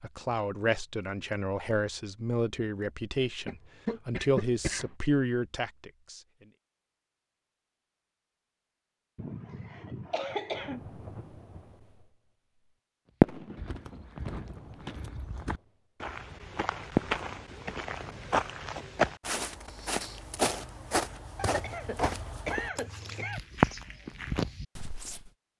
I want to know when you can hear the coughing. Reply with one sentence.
You can hear the coughing from 3.5 to 4.9 s, from 9.2 to 10.8 s and from 21.4 to 23.4 s.